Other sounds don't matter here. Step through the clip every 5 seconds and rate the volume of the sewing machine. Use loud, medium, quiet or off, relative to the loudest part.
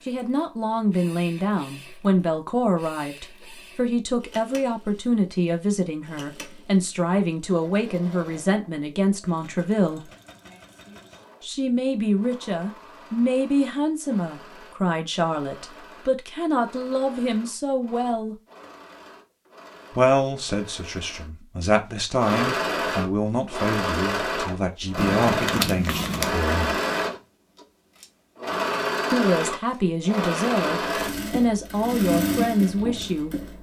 quiet, quiet, quiet, quiet, loud, loud, loud.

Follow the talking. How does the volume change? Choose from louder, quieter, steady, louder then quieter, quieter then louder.
steady.